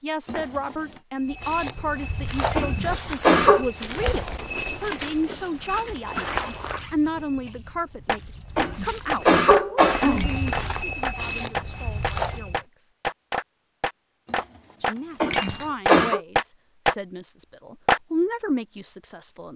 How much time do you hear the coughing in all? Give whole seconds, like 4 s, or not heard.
4 s.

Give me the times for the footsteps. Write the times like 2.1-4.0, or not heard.
1.2-12.6.